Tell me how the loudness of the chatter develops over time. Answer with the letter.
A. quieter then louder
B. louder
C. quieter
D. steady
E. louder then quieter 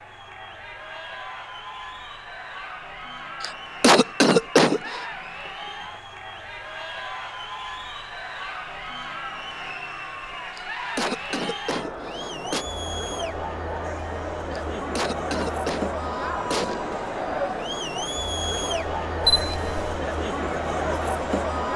B.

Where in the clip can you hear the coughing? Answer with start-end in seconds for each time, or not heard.
3.4-5.0, 10.6-12.7, 14.5-16.8.